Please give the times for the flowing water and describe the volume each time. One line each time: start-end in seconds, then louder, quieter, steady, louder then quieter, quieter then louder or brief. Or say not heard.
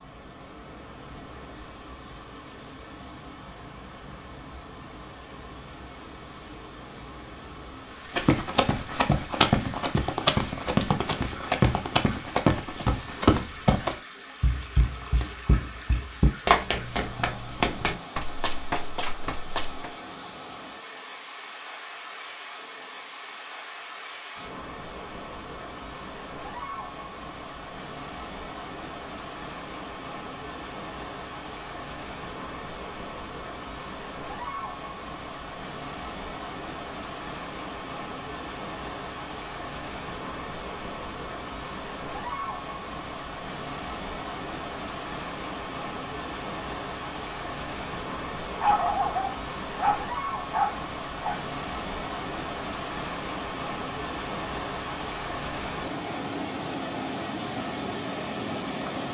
0.0-59.0 louder.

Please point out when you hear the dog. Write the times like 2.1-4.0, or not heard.
48.6-51.4.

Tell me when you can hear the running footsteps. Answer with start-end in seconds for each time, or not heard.
8.1-19.9.